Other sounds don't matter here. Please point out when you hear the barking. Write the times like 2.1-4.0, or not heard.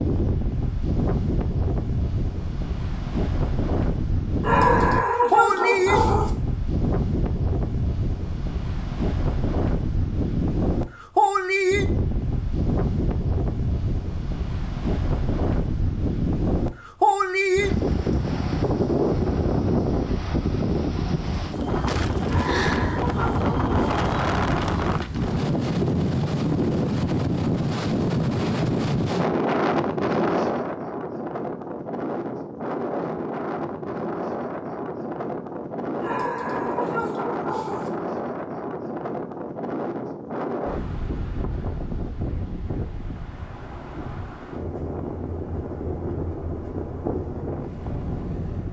4.4-6.3, 22.2-24.0, 36.0-37.9.